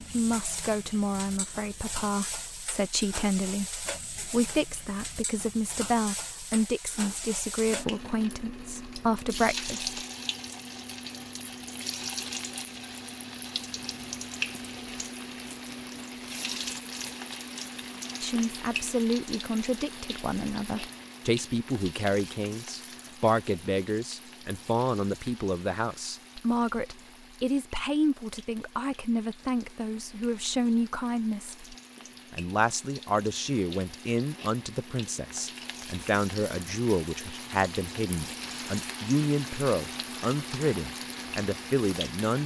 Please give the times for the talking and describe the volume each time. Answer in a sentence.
The talking can be heard from 0.0 to 10.0 s, at a steady volume; and from 18.2 to 42.4 s, at a steady volume.